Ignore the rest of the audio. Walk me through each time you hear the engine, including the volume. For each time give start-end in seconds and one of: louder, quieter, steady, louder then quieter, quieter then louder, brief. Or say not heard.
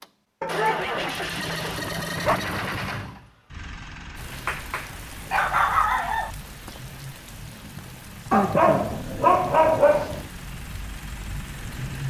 0.0-12.0 quieter.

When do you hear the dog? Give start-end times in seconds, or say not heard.
0.4-2.4, 4.3-6.3, 8.3-10.2.